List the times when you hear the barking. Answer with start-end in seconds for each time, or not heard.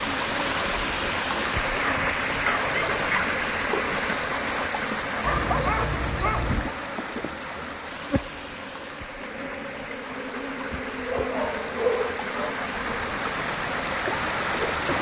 1.8-3.4, 5.2-6.8, 10.7-12.6.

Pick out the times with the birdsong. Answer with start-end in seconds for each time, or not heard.
not heard.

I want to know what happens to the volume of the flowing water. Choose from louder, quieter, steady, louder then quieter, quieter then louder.
quieter then louder.